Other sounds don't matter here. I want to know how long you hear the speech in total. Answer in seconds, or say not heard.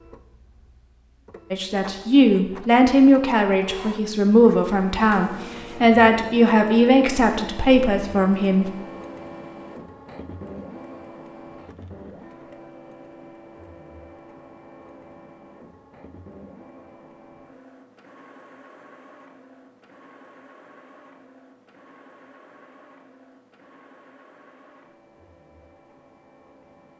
7 s.